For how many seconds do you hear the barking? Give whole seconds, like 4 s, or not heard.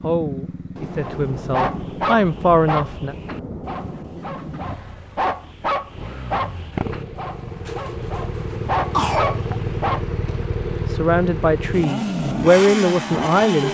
9 s.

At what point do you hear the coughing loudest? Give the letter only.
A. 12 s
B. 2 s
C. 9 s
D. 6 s
C.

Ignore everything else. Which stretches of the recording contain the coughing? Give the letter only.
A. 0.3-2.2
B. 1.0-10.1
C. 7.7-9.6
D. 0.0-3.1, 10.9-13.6
C.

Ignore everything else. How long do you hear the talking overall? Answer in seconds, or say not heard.
6 s.